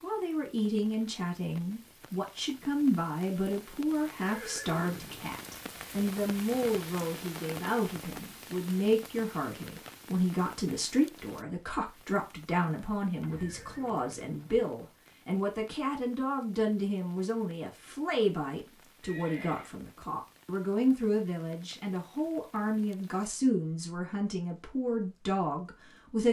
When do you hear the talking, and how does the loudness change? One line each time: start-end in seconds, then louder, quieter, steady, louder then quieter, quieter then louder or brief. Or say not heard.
0.0-26.2 steady.